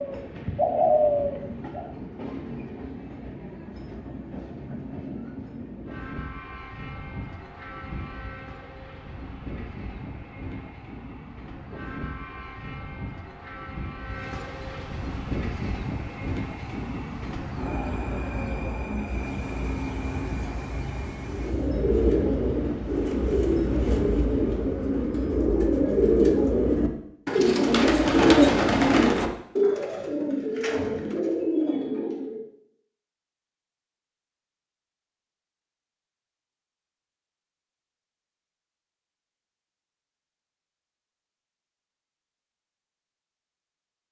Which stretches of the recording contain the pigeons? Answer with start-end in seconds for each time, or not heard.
0.0-1.9, 21.2-32.5.